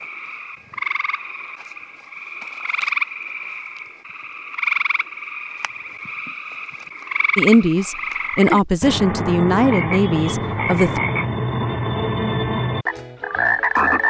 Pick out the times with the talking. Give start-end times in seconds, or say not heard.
7.3-11.0.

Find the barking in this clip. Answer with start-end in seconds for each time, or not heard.
not heard.